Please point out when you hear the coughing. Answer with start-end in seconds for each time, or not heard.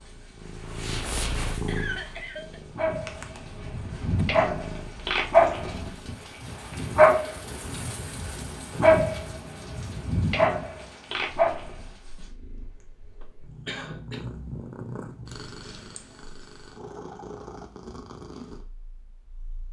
1.6-2.6, 13.2-14.2.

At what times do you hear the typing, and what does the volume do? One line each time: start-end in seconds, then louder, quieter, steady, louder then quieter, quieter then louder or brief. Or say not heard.
not heard.